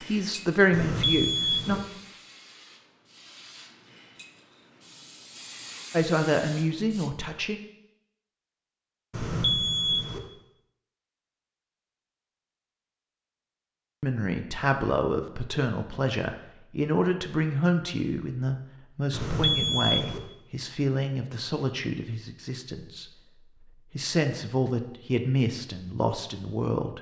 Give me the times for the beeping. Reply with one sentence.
You can hear the beeping from 0.7 to 1.8 s, from 9.1 to 10.2 s and from 19.1 to 20.2 s.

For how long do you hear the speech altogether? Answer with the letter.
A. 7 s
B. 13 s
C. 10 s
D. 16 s
D.